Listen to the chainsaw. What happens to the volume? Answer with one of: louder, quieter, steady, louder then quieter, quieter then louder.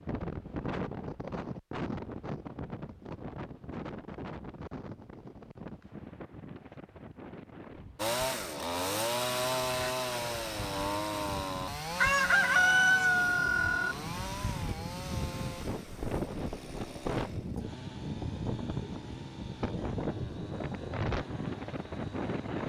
quieter.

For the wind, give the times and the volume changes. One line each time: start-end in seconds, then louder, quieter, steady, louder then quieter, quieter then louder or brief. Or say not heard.
0.0-22.6 quieter then louder.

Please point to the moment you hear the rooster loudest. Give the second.
13 s.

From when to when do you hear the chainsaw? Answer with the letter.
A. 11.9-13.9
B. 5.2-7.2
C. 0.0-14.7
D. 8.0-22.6
D.